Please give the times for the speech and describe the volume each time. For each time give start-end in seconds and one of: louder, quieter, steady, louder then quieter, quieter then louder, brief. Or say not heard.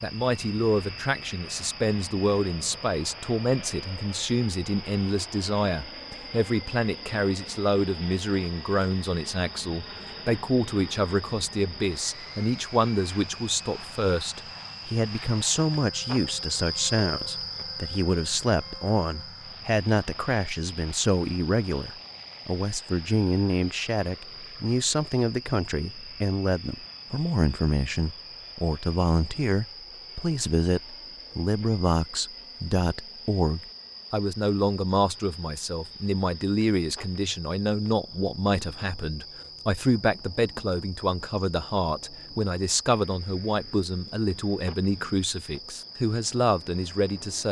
0.0-47.4 steady.